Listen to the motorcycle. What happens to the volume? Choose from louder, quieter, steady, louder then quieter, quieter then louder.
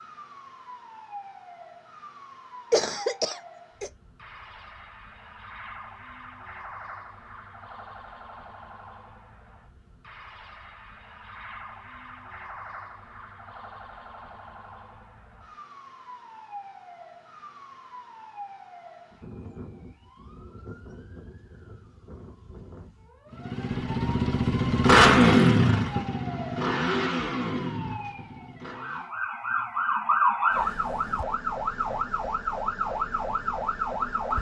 louder then quieter.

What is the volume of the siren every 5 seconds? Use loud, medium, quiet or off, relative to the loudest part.
quiet, quiet, quiet, quiet, quiet, medium, loud.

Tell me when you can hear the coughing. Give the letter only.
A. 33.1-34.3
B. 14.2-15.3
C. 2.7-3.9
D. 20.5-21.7
C.